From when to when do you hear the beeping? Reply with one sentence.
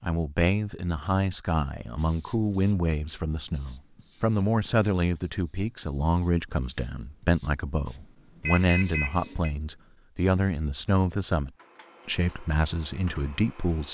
You can hear the beeping from 8.4 to 9.6 s.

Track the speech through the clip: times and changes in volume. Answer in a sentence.
You can hear the speech from 0.0 to 13.8 s, at a steady volume.